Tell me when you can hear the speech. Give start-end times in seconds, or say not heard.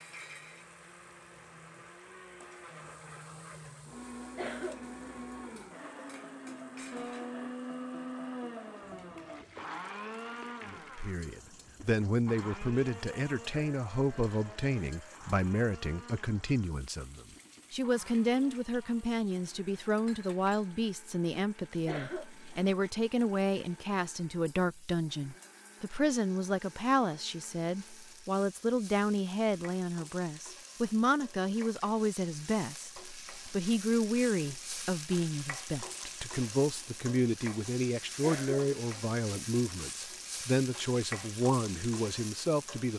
10.7-42.9.